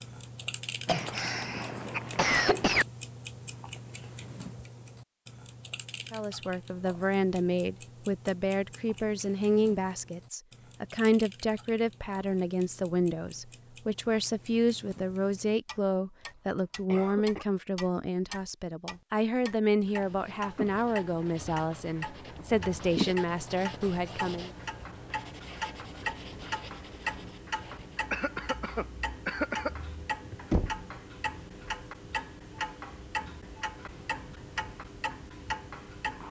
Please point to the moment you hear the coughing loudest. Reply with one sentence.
The loudest moment of the coughing is at 2 seconds.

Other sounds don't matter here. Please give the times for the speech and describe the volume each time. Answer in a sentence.
The speech can be heard from 6.1 to 24.5 s, at a steady volume.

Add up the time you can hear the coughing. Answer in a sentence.
The coughing can be heard for 4 seconds in total.